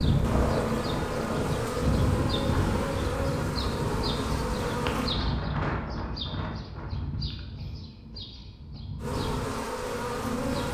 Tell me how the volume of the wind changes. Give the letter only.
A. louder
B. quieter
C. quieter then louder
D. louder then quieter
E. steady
E.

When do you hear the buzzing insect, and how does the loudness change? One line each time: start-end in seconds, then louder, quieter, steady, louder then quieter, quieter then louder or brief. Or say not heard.
0.0-5.2 steady
9.0-10.6 brief.